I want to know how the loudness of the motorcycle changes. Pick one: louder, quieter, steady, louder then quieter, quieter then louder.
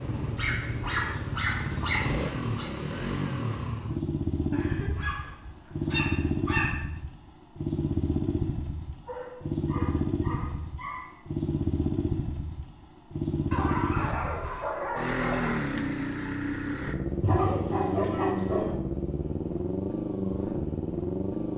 steady.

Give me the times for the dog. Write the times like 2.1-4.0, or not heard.
0.3-2.6, 4.5-6.8, 9.1-11.2, 13.5-15.5, 17.2-18.7.